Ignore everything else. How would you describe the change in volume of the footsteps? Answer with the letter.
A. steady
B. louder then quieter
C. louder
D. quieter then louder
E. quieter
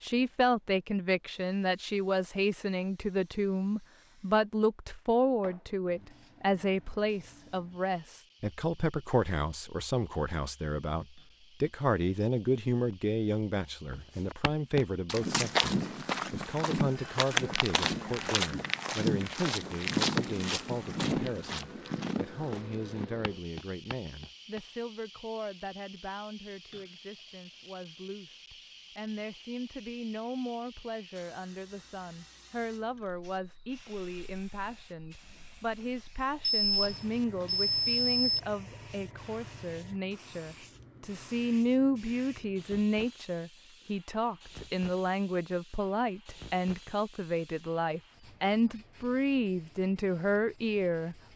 E.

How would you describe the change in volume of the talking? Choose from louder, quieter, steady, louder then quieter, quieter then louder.
quieter then louder.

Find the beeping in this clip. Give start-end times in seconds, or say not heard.
36.4-38.4.